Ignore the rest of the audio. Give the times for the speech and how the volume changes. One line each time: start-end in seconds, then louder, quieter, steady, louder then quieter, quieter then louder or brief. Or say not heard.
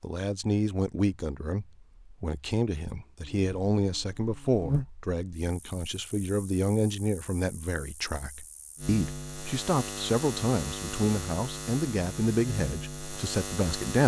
0.0-14.0 steady.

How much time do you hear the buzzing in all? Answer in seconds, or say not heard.
11 s.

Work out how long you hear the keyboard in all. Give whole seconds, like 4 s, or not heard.
not heard.